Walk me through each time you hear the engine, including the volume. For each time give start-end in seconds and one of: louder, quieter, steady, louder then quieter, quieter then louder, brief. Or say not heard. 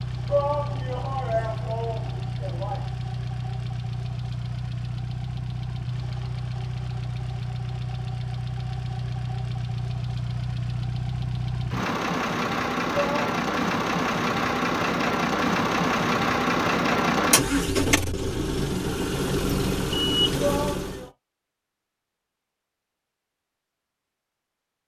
0.0-21.1 louder.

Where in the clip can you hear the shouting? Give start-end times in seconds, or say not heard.
0.2-2.9, 12.9-13.3, 20.4-21.1.